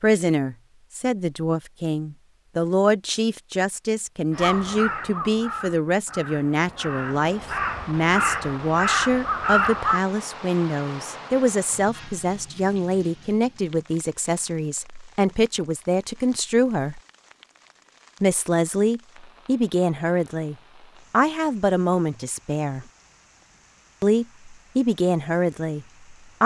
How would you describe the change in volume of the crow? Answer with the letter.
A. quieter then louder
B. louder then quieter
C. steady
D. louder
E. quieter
A.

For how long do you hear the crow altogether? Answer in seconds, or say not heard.
6 s.